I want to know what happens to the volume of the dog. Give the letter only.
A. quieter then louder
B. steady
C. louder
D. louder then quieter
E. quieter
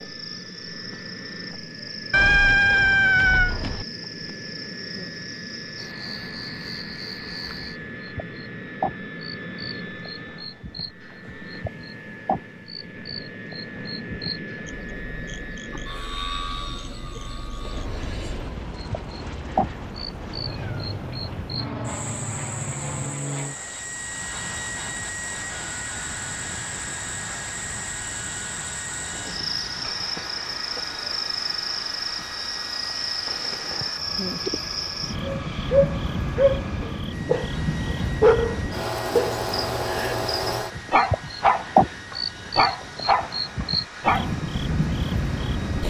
B.